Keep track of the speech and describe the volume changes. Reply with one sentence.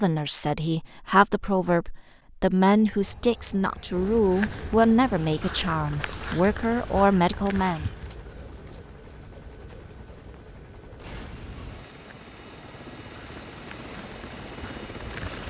The volume of the speech stays about the same.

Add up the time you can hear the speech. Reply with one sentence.
The speech can be heard for 8 seconds in total.